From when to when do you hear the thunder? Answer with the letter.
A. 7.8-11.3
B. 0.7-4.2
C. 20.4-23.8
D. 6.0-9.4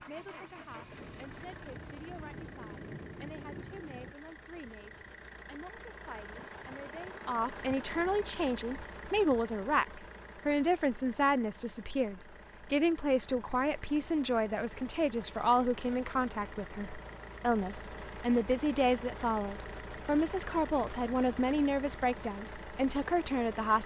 B.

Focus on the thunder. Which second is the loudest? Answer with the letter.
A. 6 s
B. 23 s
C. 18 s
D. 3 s
D.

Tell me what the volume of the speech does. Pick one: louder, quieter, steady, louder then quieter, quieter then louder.
louder.